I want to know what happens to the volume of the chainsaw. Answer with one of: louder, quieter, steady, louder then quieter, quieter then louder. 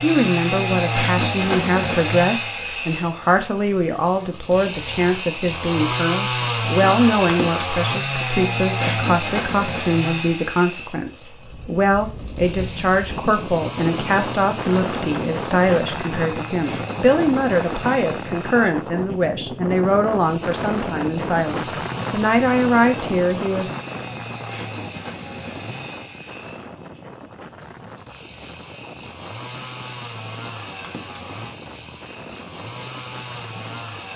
quieter.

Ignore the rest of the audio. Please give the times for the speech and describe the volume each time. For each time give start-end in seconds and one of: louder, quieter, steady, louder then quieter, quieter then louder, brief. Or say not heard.
0.0-23.7 steady.